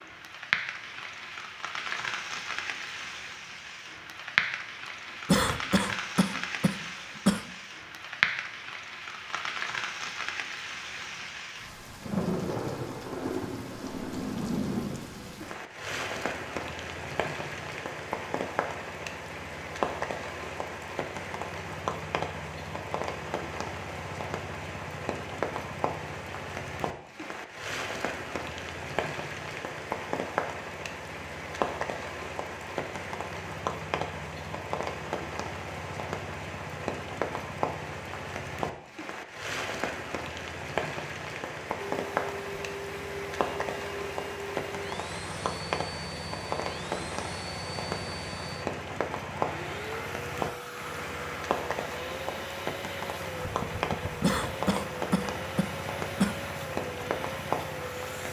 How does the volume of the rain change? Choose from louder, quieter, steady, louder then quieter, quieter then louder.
steady.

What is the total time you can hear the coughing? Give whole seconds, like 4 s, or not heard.
4 s.